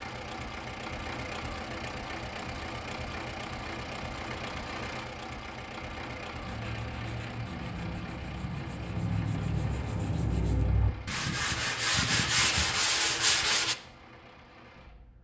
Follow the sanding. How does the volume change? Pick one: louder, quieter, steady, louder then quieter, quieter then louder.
louder.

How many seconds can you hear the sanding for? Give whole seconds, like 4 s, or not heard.
7 s.